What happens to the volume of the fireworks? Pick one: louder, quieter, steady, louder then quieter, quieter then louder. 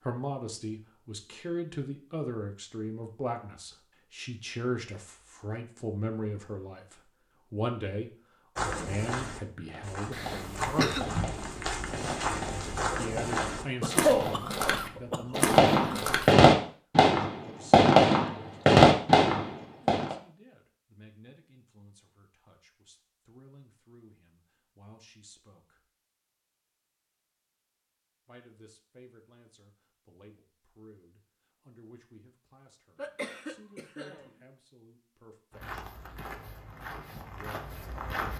louder.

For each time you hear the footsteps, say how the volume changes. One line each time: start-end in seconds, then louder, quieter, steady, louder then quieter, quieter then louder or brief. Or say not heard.
8.6-16.4 louder
35.5-38.3 brief.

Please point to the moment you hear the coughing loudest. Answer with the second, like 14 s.
14 s.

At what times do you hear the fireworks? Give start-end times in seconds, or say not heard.
9.7-20.1.